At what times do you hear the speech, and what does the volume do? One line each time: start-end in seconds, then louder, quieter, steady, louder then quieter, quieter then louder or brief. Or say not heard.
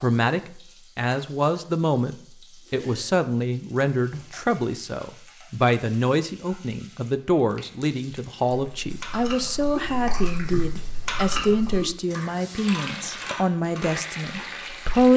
0.0-15.1 steady.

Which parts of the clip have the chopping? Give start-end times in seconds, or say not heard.
not heard.